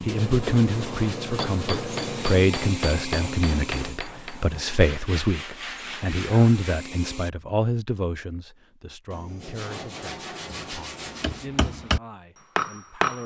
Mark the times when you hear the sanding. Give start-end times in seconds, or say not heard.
0.1-2.5, 4.8-6.8, 9.1-11.5.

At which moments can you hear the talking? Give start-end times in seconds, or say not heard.
0.0-13.2.